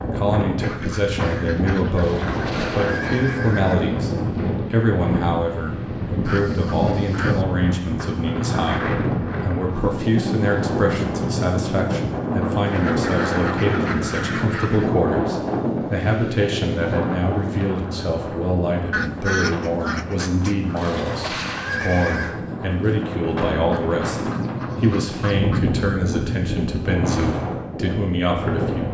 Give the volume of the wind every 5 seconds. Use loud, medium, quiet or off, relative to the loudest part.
loud, loud, loud, loud, medium, loud.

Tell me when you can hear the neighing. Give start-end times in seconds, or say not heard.
1.9-3.9, 20.8-22.4.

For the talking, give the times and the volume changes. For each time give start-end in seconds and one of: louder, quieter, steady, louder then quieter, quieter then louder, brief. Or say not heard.
0.0-28.9 steady.